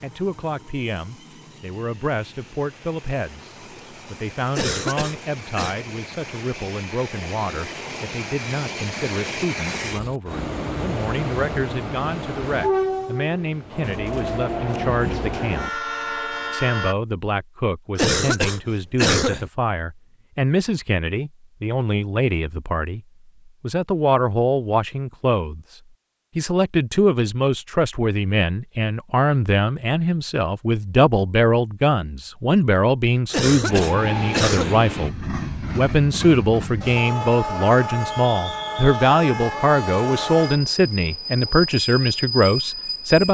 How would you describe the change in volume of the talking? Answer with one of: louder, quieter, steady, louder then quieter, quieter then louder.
louder.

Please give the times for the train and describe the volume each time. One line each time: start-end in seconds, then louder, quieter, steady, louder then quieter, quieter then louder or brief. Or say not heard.
0.0-16.9 louder
33.6-43.2 steady.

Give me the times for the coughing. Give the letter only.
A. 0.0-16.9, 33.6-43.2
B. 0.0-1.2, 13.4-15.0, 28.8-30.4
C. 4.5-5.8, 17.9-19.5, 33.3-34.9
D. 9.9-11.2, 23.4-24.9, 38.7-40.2
C.